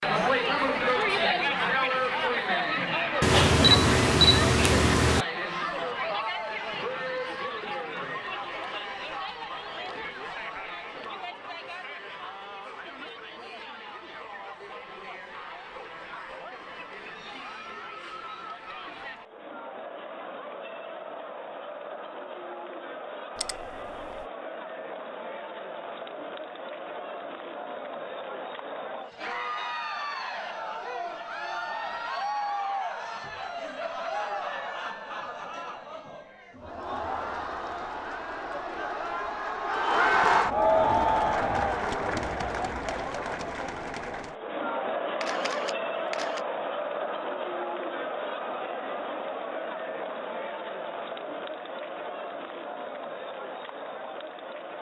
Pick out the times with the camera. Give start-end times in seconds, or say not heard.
3.2-5.2, 23.4-24.1, 45.2-46.4.